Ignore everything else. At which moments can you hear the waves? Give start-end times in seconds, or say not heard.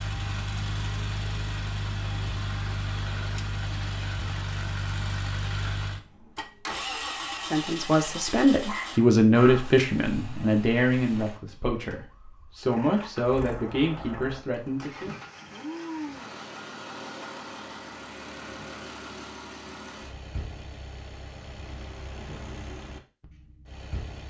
not heard.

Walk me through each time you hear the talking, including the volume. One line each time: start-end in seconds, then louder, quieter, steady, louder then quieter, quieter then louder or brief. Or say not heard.
7.5-15.2 quieter.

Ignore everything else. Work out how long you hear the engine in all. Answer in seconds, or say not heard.
24 s.